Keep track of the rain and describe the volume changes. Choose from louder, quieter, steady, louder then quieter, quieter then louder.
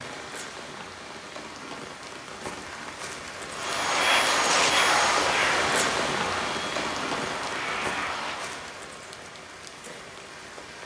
louder then quieter.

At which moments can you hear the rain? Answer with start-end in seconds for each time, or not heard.
0.0-10.8.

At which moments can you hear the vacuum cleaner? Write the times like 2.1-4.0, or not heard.
3.5-8.8.